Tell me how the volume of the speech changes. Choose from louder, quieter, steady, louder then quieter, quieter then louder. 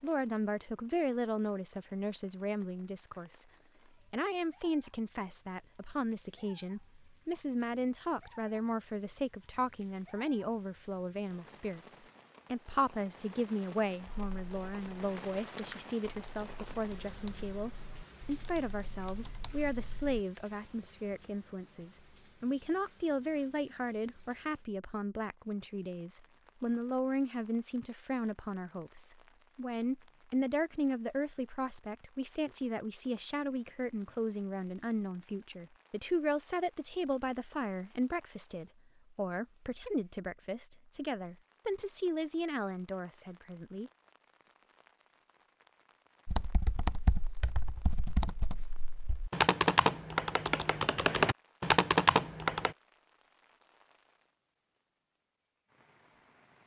steady.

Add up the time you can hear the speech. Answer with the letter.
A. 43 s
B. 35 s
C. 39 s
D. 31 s
A.